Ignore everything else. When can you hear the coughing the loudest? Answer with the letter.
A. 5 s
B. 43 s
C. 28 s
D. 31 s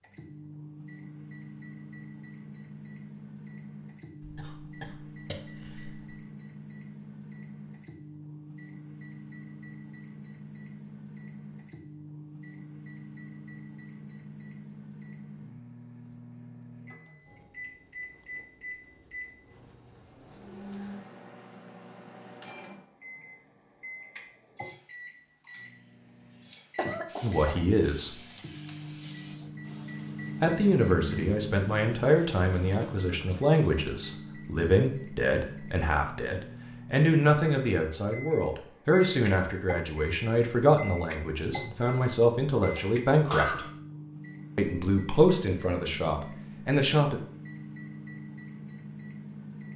B.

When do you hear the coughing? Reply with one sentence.
The coughing can be heard from 4.2 to 6.2 s, from 26.8 to 27.6 s and from 42.6 to 43.7 s.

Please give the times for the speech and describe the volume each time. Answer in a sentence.
The speech can be heard briefly from 27.2 to 28.1 s; from 30.4 to 43.6 s, at a steady volume; and briefly from 44.5 to 47.2 s.